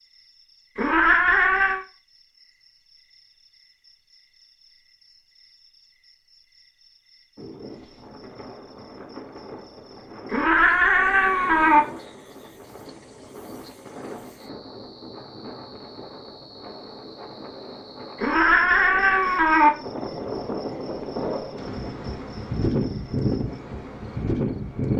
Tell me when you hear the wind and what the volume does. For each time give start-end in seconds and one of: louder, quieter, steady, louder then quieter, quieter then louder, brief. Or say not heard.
7.3-24.9 louder.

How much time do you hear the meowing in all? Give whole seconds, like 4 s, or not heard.
4 s.